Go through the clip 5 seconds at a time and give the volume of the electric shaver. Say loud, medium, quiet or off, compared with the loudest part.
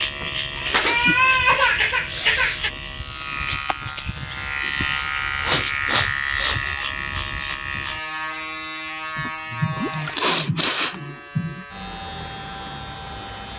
loud, loud, medium.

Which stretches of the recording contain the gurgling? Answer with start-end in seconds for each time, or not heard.
9.8-10.2.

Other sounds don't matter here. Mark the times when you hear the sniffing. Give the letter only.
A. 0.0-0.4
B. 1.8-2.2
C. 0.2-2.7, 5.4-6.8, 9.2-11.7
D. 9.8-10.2
C.